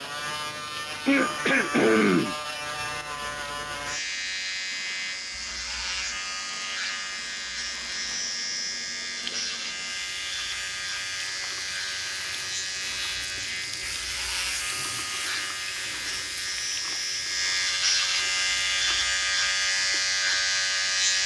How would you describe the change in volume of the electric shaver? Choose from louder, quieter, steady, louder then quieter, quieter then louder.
louder.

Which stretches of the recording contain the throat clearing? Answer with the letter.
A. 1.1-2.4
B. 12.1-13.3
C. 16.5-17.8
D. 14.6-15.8
A.